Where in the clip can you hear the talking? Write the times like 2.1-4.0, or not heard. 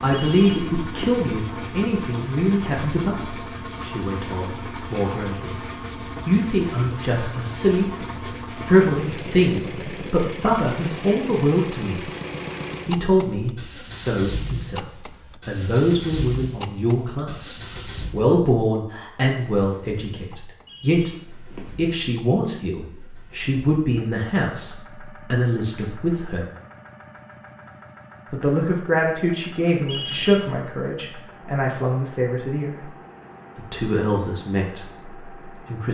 0.0-5.7, 6.2-7.8, 8.5-12.1, 12.8-26.4, 28.3-32.9, 33.5-35.8.